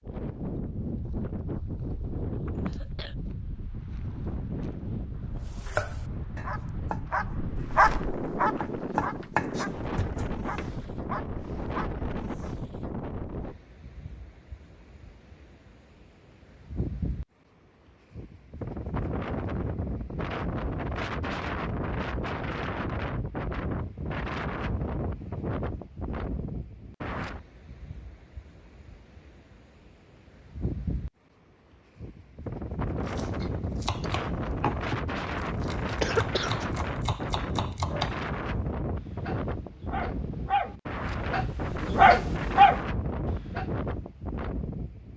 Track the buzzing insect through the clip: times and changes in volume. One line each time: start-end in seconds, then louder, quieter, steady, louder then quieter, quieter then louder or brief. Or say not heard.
not heard.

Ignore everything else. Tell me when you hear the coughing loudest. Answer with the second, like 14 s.
36 s.